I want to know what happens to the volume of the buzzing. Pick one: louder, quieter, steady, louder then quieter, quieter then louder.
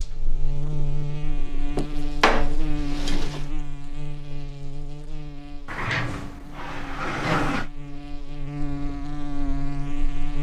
quieter then louder.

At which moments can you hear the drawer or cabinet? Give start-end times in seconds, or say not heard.
1.8-3.4, 5.7-7.7.